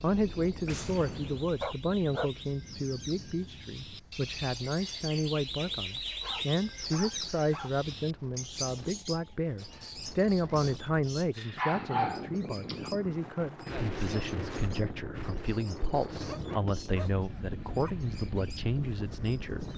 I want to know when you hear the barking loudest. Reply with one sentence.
The volume of the barking peaks at 12 seconds.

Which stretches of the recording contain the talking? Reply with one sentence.
You can hear the talking from 0.0 to 19.7 s.